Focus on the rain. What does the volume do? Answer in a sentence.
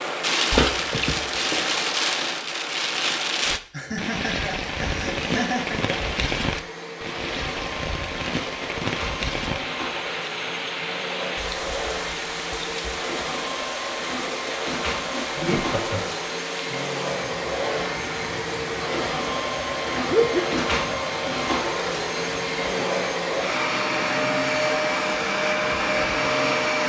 The loudness of the rain goes down.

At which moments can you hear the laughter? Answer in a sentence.
You can hear the laughter from 3.7 to 6.0 s, from 15.1 to 16.1 s and from 20.1 to 20.6 s.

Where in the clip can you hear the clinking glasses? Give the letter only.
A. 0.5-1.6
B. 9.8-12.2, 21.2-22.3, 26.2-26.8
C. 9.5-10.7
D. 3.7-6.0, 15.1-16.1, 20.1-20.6
A.